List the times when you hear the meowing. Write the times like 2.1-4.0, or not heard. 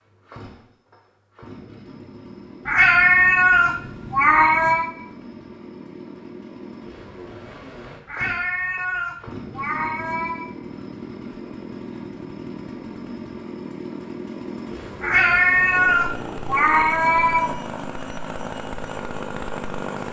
2.6-4.9, 8.1-10.5, 15.0-17.6.